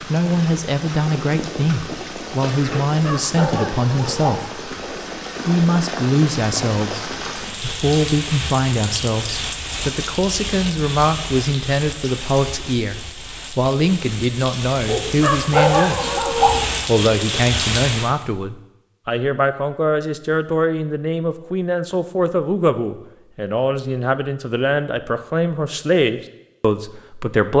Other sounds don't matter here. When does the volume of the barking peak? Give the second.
16 s.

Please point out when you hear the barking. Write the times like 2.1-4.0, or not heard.
2.9-4.6, 14.8-16.8.